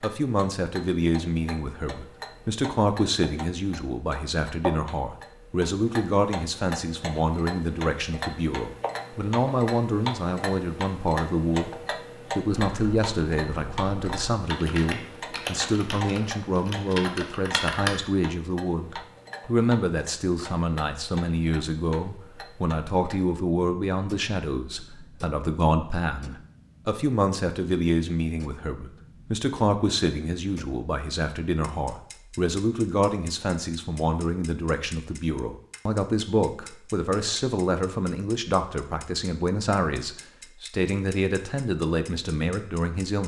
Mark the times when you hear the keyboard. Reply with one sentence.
The keyboard can be heard from 12.6 to 17.9 s.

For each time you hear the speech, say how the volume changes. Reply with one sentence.
The speech can be heard from 0.0 to 43.2 s, at a steady volume.